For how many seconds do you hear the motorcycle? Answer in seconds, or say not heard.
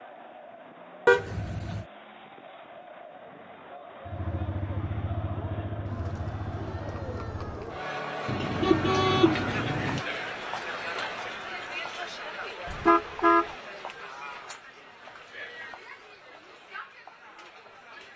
4 s.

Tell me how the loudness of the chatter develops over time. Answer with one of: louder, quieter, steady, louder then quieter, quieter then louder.
louder then quieter.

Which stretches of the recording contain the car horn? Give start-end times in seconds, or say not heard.
1.1-1.9, 8.2-10.0, 12.7-13.5.